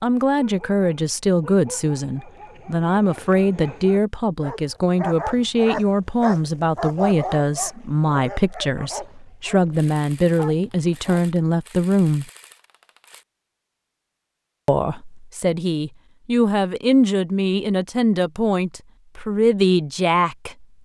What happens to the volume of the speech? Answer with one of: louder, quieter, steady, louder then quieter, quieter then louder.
steady.